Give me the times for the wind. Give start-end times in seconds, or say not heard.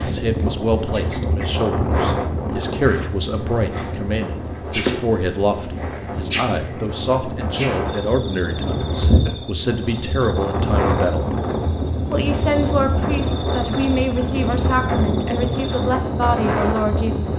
0.0-17.3.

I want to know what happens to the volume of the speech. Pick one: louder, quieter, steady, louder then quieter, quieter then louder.
steady.